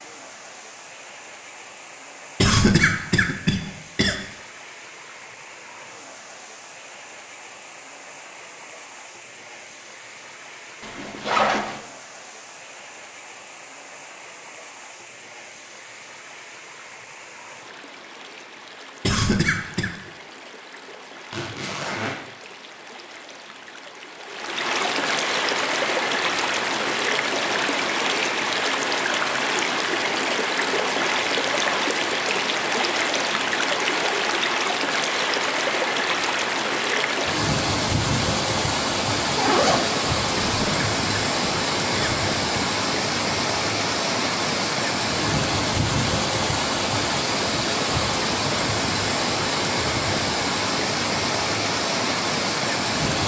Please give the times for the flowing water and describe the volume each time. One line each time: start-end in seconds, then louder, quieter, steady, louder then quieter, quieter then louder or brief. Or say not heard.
0.0-53.2 louder.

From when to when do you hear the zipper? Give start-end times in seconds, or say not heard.
10.8-11.8, 21.3-22.2, 39.4-40.0.